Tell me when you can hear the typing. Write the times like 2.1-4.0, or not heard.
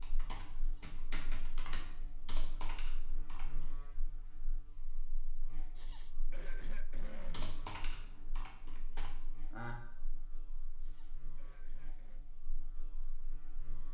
0.0-3.8, 7.3-9.8.